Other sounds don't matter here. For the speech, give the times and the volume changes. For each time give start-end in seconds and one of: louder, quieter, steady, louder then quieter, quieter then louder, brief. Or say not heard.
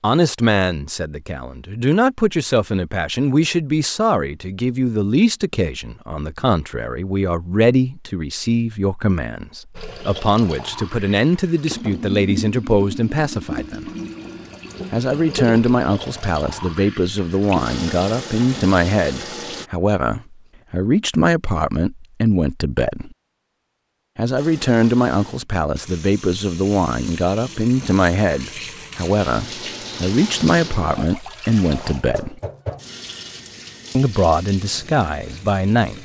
0.0-13.9 steady
14.9-23.1 steady
24.1-32.4 steady
34.0-36.0 brief.